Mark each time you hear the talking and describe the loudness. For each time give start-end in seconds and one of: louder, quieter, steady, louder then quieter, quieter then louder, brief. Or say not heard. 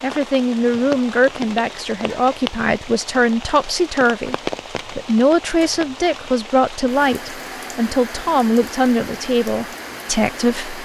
0.0-10.8 steady.